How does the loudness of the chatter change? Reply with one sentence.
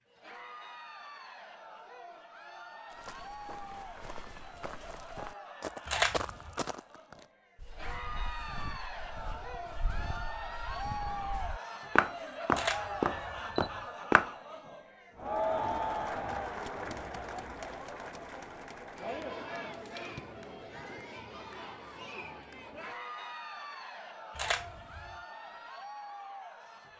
The loudness of the chatter goes up, then down.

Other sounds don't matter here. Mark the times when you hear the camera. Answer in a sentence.
The camera can be heard from 5.8 to 6.5 s, from 12.5 to 13.8 s and from 24.4 to 25.1 s.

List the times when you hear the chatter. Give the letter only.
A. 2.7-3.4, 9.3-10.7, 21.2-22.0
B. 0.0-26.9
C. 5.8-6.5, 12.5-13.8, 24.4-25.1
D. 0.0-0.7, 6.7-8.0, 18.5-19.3
B.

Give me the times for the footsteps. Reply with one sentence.
You can hear the footsteps from 2.9 to 14.3 s.